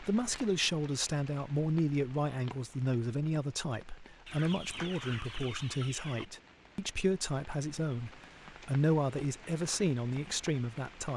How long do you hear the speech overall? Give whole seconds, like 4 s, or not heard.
11 s.